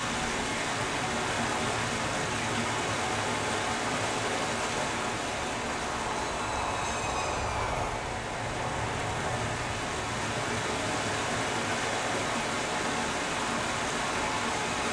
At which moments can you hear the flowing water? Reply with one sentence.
You can hear the flowing water from 0.0 to 14.8 s.